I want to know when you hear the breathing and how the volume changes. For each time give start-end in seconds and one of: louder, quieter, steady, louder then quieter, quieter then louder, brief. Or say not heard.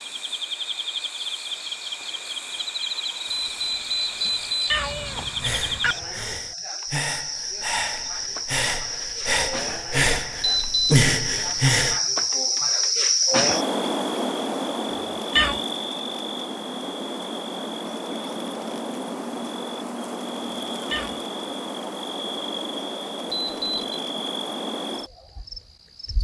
5.2-12.0 louder.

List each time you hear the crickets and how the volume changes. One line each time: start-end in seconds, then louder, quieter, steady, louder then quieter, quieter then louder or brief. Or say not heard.
0.0-26.1 louder then quieter.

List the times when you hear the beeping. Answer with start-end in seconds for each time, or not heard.
3.3-4.8, 10.4-11.0, 23.3-23.9.